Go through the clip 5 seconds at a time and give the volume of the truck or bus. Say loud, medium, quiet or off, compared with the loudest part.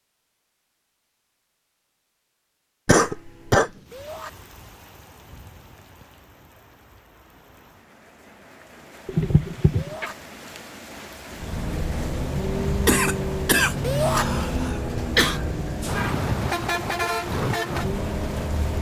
off, off, loud, loud.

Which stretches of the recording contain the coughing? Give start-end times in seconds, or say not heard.
2.9-3.7, 9.1-10.1, 12.8-15.4.